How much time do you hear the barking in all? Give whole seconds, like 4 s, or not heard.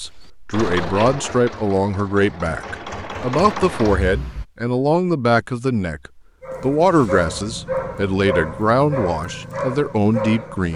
4 s.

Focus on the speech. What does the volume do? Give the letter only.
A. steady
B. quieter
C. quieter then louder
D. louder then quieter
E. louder
A.